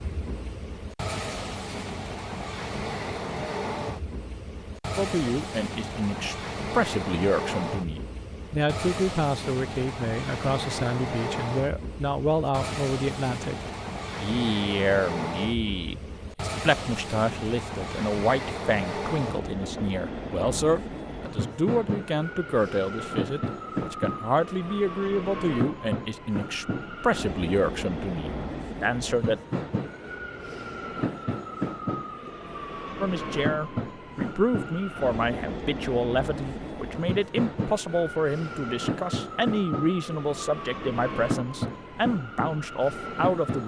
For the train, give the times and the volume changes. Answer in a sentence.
The train can be heard from 0.0 to 43.6 s, at a steady volume.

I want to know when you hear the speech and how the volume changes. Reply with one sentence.
The speech can be heard from 5.0 to 29.4 s, at a steady volume; and from 33.0 to 43.6 s, at a steady volume.